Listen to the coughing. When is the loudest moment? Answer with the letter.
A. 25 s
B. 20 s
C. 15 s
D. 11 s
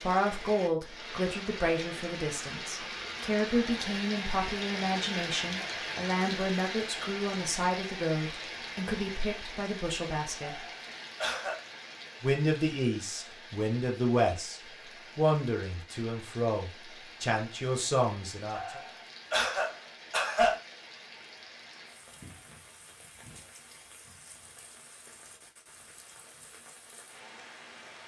B.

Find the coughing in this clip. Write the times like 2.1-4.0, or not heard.
10.4-11.6, 18.5-20.6.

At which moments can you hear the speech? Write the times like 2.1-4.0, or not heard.
0.0-10.7, 12.2-18.8.